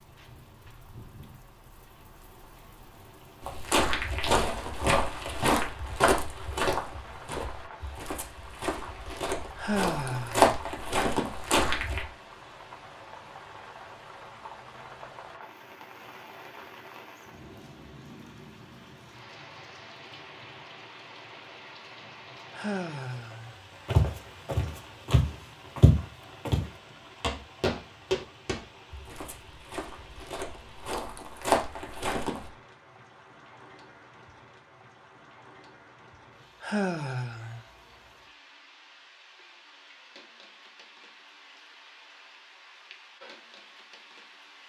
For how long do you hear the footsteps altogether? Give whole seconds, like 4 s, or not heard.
17 s.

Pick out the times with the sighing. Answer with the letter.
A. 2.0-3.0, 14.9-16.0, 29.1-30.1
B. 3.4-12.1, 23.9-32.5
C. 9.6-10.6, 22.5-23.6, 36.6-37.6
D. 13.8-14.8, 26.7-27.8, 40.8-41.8
C.